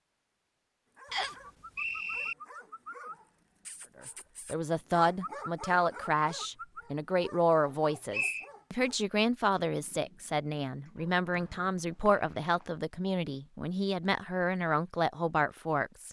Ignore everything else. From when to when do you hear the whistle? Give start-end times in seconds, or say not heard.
1.1-2.4, 7.7-8.5, 11.3-12.7.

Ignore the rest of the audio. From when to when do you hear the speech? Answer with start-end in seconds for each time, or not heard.
4.5-16.0.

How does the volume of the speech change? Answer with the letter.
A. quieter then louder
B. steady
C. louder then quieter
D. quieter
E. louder
B.